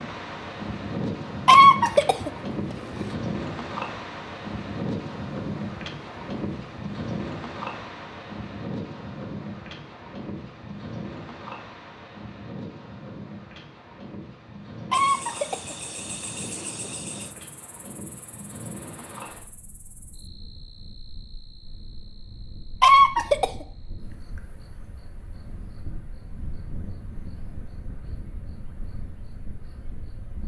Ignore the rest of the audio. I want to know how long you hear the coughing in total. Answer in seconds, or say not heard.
4 s.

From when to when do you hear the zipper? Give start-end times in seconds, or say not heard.
not heard.